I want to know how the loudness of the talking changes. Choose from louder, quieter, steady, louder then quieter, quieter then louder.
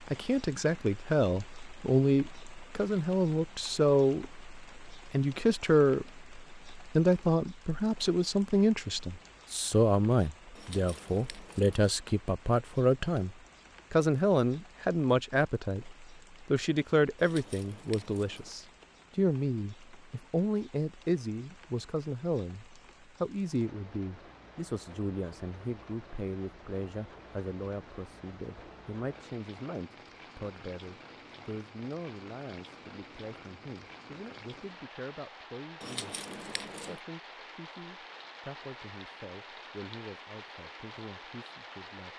quieter.